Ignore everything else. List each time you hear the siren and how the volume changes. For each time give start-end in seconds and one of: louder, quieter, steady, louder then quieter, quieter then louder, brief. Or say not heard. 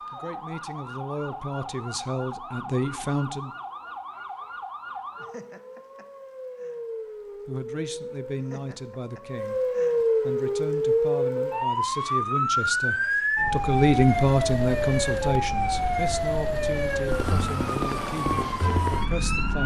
0.0-19.6 louder.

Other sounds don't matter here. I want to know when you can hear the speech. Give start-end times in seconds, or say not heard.
0.0-3.5, 7.5-19.6.